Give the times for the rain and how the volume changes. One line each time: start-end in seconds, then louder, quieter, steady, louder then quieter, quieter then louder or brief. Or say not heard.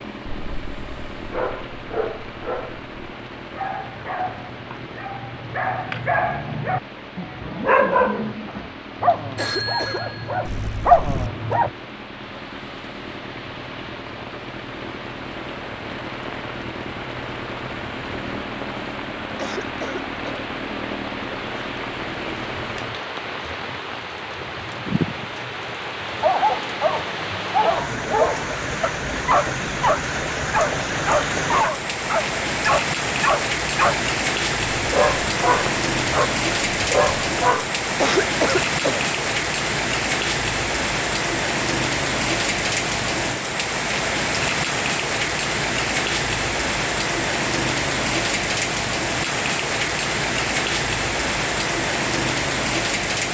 0.0-53.2 louder.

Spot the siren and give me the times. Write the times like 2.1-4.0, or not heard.
not heard.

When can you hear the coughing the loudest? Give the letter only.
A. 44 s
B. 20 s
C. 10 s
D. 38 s
D.